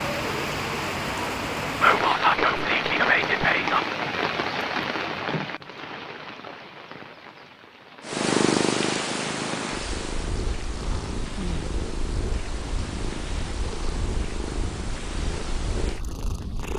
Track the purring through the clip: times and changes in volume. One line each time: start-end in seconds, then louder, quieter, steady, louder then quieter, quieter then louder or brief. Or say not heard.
8.1-16.7 quieter.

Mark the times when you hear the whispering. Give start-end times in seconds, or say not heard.
1.8-3.8.